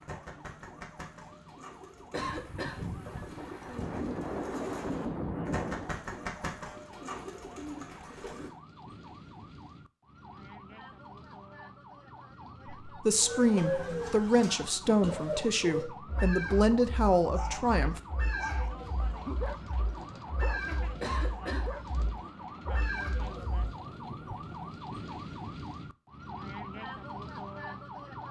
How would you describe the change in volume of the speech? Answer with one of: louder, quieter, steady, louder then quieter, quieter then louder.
steady.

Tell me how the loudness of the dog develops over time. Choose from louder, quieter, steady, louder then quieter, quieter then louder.
quieter then louder.